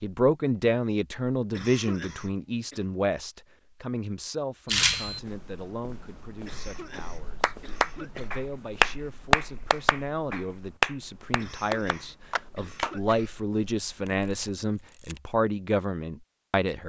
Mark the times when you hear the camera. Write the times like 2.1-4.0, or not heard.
4.7-5.2, 14.1-15.2.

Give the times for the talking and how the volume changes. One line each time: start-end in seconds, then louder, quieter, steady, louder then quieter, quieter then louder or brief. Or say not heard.
0.0-16.8 quieter then louder.